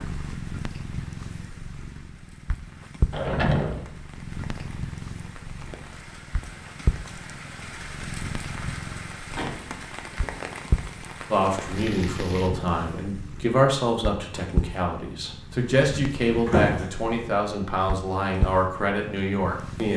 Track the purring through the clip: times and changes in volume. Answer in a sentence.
You can hear the purring from 0.0 to 19.9 s, at a steady volume.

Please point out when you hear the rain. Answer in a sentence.
You can hear the rain from 0.0 to 12.6 s.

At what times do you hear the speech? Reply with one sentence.
The speech can be heard from 11.3 to 19.9 s.